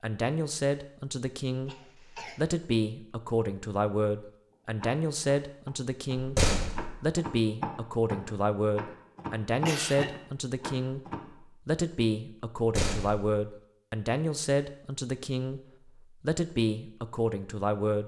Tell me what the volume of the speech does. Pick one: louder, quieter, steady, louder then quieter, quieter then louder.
steady.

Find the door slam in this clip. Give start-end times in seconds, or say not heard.
6.2-7.0, 12.6-13.3.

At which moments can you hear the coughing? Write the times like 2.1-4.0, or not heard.
1.6-2.5, 9.5-10.2.